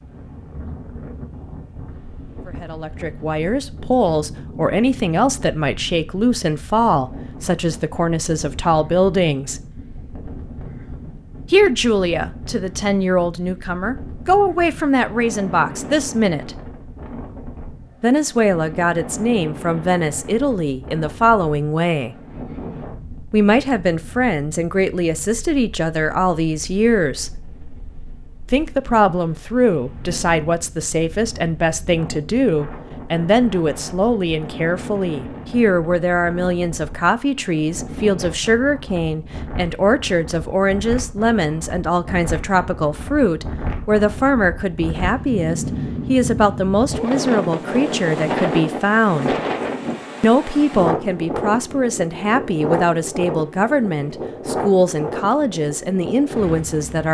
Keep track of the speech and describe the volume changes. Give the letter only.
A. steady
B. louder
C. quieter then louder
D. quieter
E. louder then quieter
A.